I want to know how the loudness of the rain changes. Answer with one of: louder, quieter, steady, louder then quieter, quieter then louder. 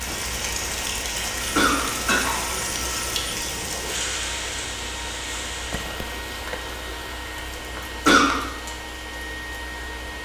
quieter.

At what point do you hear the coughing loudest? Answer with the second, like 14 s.
8 s.